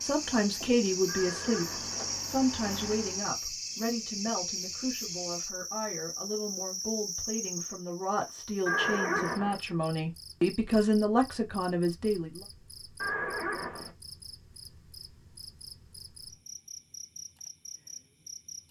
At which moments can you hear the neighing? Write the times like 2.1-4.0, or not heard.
1.1-2.0, 8.7-9.6, 13.0-13.9.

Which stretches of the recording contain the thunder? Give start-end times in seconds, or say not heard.
not heard.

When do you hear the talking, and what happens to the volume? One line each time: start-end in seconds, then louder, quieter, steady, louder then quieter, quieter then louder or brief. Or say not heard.
0.0-12.4 quieter then louder.